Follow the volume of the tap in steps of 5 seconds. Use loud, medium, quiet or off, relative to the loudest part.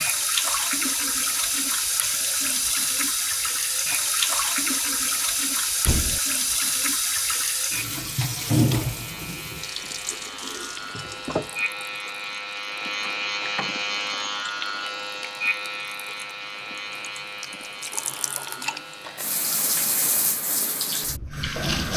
loud, loud, medium, medium, loud.